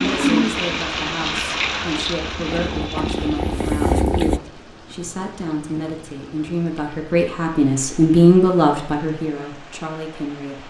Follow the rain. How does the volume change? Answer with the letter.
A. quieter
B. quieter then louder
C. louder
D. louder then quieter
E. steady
A.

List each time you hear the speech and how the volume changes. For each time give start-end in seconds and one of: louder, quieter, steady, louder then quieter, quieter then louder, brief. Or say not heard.
0.0-10.6 louder.